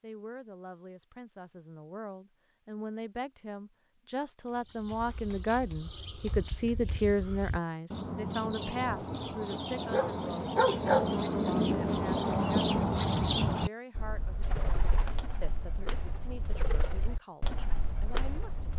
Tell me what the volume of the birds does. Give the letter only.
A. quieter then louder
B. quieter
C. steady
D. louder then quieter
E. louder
D.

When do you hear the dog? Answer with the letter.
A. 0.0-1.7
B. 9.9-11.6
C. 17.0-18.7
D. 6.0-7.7
B.